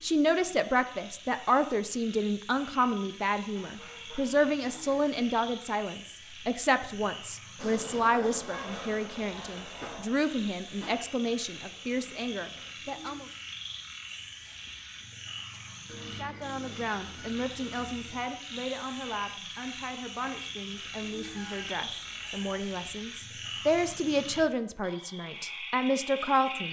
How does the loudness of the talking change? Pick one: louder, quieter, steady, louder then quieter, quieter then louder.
quieter then louder.